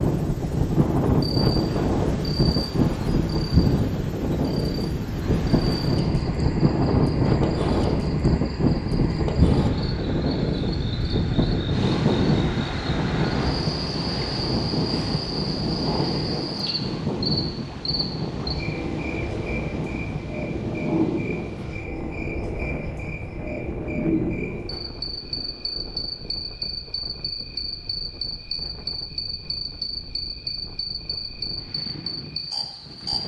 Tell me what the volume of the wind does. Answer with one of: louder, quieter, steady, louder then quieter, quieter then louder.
quieter.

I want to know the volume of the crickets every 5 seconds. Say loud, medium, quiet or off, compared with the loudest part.
medium, loud, loud, loud, loud, loud, loud.